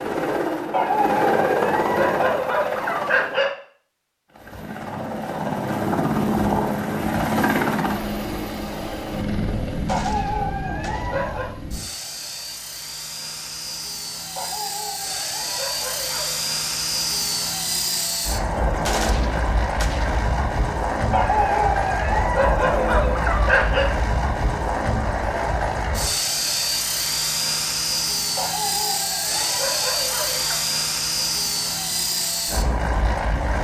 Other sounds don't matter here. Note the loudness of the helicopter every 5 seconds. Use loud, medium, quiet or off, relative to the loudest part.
loud, loud, medium, loud, loud, loud, loud.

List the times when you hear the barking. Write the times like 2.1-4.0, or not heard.
0.7-3.5, 9.8-11.6, 14.3-16.4, 21.1-23.9, 28.4-30.6.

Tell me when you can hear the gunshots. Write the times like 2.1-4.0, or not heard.
9.8-11.2, 18.9-20.2.